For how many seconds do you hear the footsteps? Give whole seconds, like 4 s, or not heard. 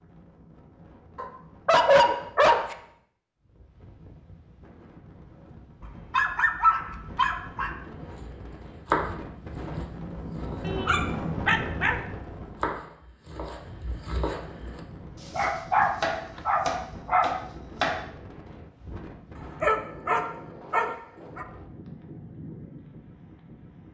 not heard.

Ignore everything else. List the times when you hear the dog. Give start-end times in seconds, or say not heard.
1.1-2.8, 5.8-7.8, 10.7-12.0, 15.3-17.3, 19.6-21.4.